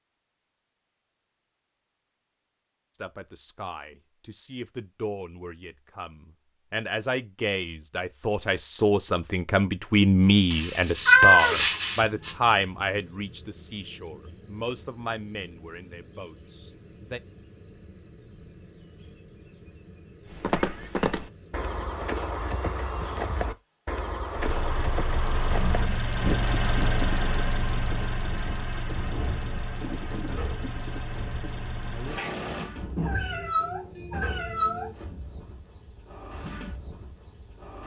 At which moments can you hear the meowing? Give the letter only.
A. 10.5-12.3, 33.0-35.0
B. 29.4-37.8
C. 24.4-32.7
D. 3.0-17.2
A.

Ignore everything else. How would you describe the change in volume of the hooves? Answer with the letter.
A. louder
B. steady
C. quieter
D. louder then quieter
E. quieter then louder
C.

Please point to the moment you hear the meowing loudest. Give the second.
11 s.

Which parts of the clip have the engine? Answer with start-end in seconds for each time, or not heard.
24.4-32.7.